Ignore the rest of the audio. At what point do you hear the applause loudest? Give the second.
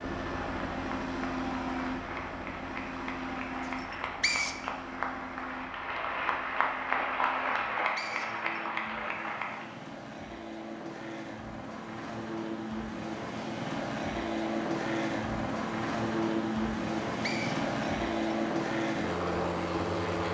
7 s.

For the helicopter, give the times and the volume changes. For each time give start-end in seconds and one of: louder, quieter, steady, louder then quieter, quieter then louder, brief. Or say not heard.
0.0-20.2 quieter then louder.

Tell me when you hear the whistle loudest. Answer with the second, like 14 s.
4 s.